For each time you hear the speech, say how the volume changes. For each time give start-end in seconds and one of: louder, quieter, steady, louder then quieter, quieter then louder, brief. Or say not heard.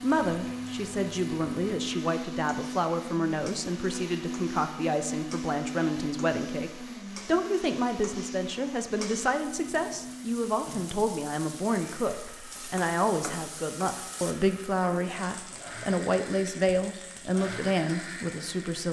0.0-18.8 steady.